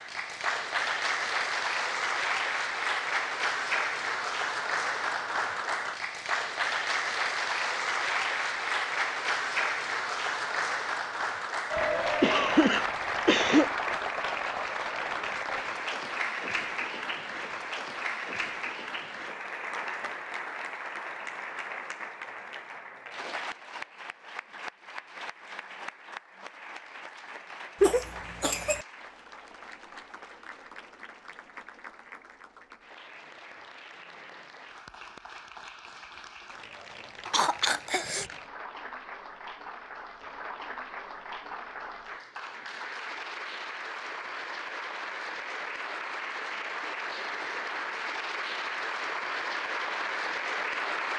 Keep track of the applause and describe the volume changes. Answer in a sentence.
The volume of the applause goes down, then up.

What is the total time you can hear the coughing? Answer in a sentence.
You can hear the coughing for 4 seconds altogether.